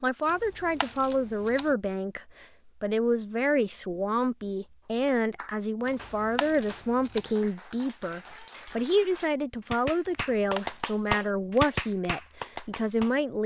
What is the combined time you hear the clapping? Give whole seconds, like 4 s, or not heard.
8 s.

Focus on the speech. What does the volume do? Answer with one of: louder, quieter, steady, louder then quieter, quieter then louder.
steady.